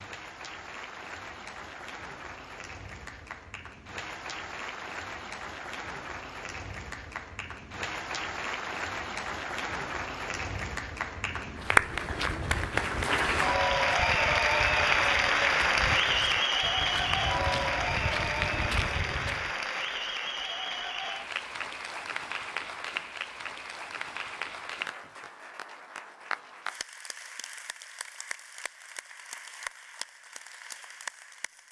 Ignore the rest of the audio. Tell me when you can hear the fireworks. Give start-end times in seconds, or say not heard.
not heard.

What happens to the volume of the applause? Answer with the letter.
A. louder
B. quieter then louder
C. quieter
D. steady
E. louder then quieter
E.